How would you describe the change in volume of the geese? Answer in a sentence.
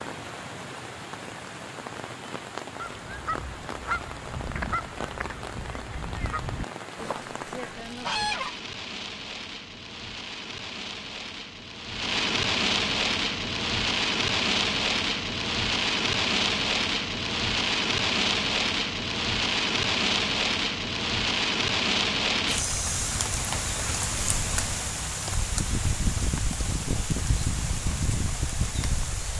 The loudness of the geese goes down, then up.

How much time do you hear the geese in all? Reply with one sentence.
You can hear the geese for 6 seconds altogether.